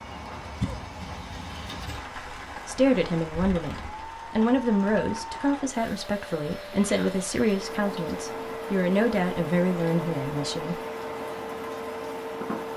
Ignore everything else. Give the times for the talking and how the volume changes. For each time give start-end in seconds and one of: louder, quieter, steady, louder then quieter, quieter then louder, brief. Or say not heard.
2.6-10.8 steady.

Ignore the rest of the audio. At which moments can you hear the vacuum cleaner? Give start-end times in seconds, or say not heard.
0.0-12.7.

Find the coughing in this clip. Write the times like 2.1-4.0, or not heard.
0.6-1.1.